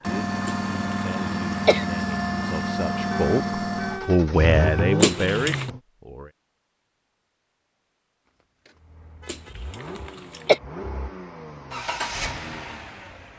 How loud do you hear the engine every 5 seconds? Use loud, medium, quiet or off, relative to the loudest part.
loud, medium, medium.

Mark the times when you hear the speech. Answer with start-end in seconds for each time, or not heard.
0.0-6.3.